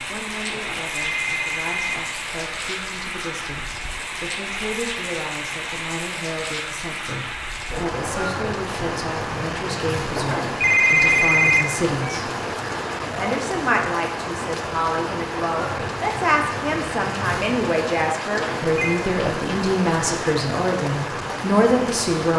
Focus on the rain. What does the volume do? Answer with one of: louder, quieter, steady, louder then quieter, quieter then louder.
steady.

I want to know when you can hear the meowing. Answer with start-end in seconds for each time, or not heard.
not heard.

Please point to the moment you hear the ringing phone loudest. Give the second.
11 s.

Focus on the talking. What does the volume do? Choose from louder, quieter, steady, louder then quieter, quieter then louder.
louder.